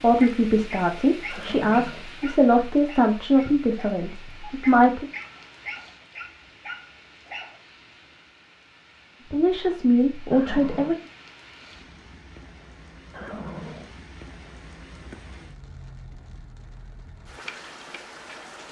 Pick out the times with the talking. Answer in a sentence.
You can hear the talking from 0.0 to 5.0 s and from 9.3 to 10.9 s.